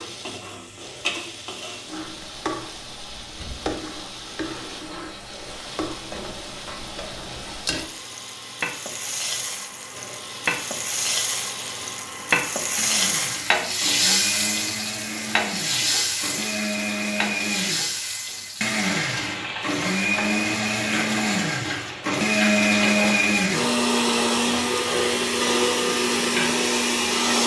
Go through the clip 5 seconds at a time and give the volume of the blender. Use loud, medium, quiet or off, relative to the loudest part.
quiet, quiet, quiet, medium, loud, loud.